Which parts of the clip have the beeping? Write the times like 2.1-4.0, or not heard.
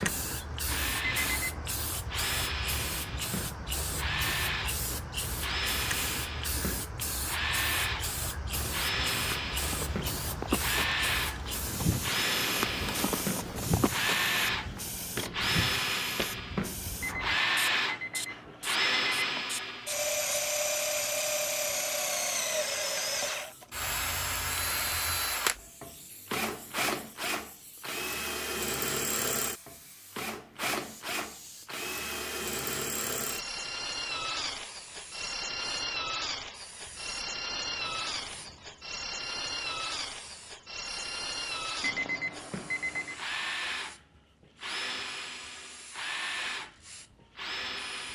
1.0-1.8, 17.0-19.4, 41.8-43.2.